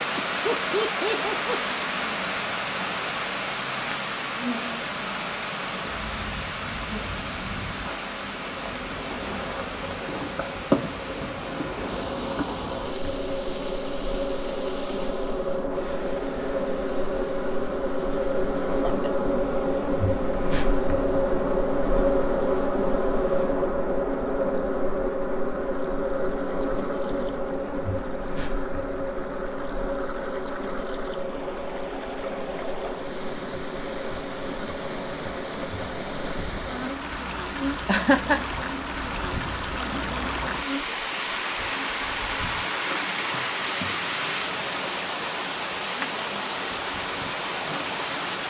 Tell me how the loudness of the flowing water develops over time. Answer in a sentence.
The loudness of the flowing water goes down, then up.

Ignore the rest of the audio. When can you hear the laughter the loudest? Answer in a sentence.
The loudest moment of the laughter is at 38 seconds.